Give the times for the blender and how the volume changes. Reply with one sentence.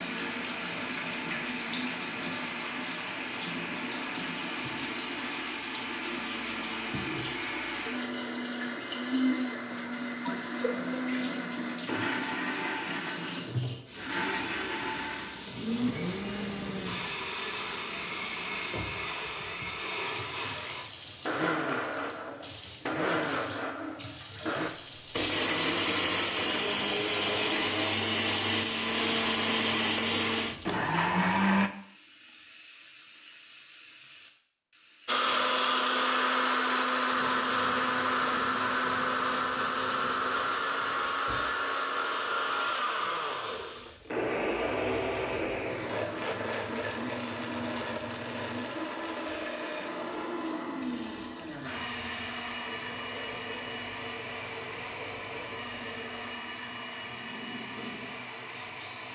The blender can be heard from 0.0 to 31.7 s, getting louder; and from 35.0 to 59.1 s, getting quieter.